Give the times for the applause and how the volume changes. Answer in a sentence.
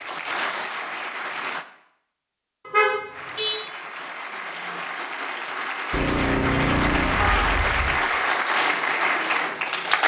The applause can be heard briefly from 0.0 to 1.6 s; and from 3.1 to 10.0 s, getting louder.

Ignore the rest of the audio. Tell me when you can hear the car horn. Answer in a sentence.
You can hear the car horn from 2.6 to 3.5 s and from 5.9 to 8.0 s.